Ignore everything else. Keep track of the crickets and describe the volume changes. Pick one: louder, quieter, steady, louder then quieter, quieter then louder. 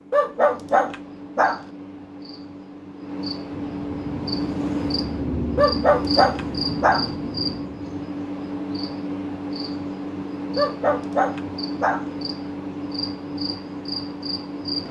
louder.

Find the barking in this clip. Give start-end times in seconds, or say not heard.
0.1-1.6, 5.5-7.0, 10.6-12.1.